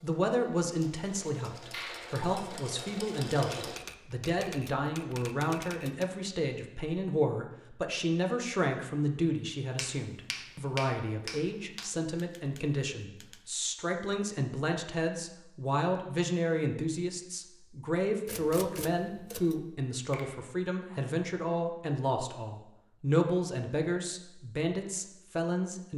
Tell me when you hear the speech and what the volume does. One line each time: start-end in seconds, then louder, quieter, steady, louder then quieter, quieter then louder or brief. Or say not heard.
0.0-25.9 steady.